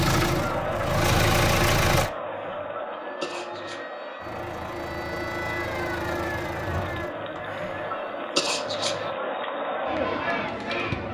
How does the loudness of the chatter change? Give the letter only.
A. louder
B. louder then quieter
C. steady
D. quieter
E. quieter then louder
E.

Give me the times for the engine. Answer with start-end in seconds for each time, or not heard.
0.0-2.1, 4.2-7.2.